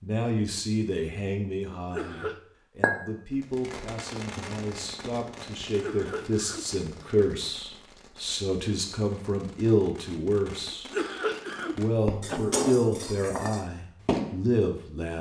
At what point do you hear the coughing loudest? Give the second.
11 s.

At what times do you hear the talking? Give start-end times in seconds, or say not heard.
0.0-10.9, 11.8-15.1.